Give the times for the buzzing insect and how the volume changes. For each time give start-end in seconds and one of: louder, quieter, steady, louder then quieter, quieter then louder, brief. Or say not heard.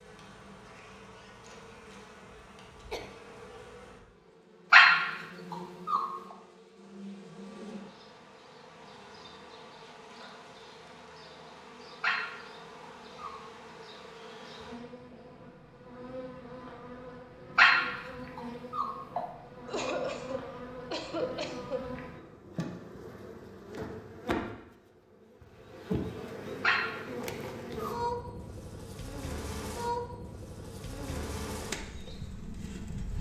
0.0-33.1 louder.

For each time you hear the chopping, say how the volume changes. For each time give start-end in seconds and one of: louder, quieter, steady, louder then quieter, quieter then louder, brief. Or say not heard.
not heard.